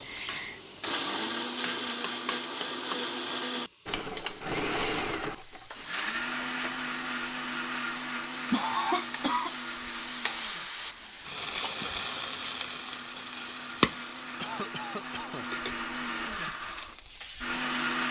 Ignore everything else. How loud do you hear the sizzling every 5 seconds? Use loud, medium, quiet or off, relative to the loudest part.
medium, medium, loud, medium.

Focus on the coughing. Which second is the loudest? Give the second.
9 s.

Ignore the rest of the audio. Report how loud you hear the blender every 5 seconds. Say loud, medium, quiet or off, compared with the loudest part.
loud, loud, medium, loud.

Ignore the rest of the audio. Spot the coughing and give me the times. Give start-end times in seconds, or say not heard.
0.0-0.7, 8.5-9.6, 14.3-15.5.